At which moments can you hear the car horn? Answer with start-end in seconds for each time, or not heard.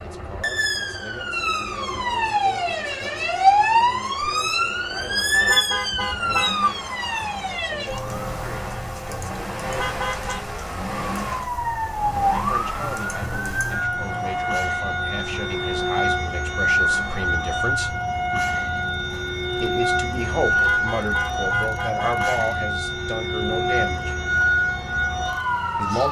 5.3-6.8, 9.6-10.4, 20.5-22.4.